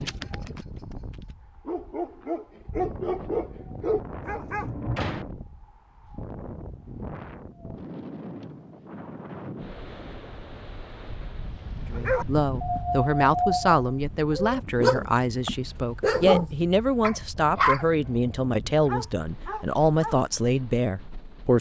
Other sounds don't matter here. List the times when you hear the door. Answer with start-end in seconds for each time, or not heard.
4.3-5.3.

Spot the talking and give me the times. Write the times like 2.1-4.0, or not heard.
11.9-21.5.